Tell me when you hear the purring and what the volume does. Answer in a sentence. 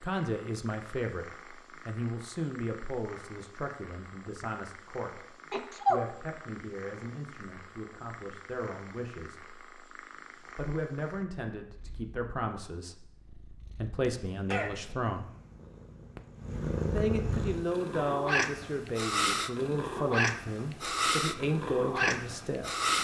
You can hear the purring from 0.0 to 22.9 s, getting louder.